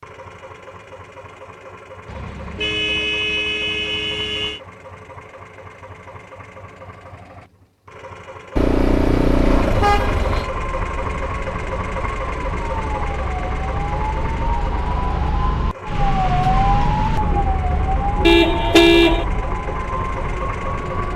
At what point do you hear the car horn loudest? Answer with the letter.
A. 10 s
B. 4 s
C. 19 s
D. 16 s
C.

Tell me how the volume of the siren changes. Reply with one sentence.
The loudness of the siren goes up, then down.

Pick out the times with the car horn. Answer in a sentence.
You can hear the car horn from 2.0 to 4.6 s, from 8.6 to 10.5 s and from 18.2 to 19.2 s.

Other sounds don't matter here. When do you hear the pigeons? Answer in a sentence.
The pigeons can't be heard in this clip.